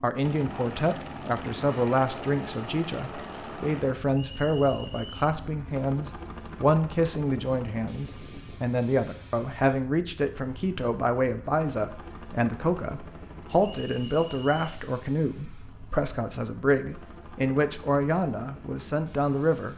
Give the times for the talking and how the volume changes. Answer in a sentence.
The talking can be heard from 0.0 to 19.7 s, at a steady volume.